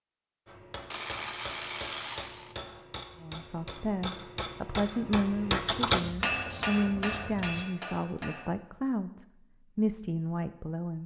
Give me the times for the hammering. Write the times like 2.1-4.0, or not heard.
0.5-8.5.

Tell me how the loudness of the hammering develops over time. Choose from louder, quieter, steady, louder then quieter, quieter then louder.
louder then quieter.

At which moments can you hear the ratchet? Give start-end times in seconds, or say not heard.
0.9-2.5, 5.7-7.7.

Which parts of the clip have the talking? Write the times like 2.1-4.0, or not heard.
3.2-11.0.